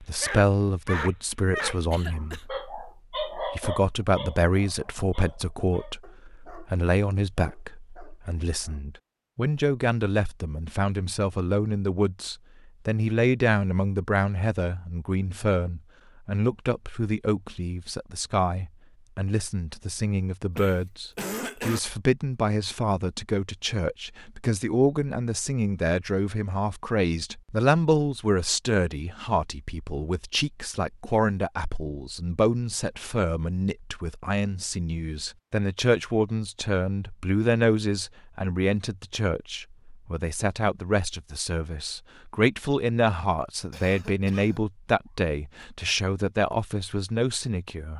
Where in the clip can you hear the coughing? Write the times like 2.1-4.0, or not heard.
1.9-2.5, 20.6-21.8, 43.7-44.6.